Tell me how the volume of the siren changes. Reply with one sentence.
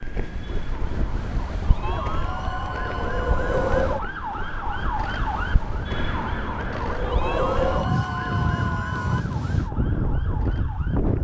The loudness of the siren goes up, then down.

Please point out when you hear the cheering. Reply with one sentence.
You can hear the cheering from 1.8 to 3.8 s and from 7.2 to 9.2 s.